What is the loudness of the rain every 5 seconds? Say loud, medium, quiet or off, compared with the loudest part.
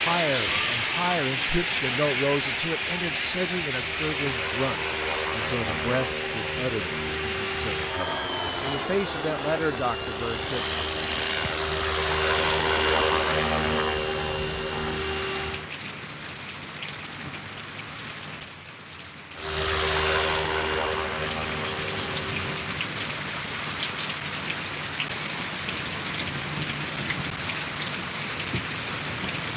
loud, medium, medium, medium, loud, loud.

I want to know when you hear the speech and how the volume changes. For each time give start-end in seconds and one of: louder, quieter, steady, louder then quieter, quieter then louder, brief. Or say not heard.
0.0-10.7 quieter then louder.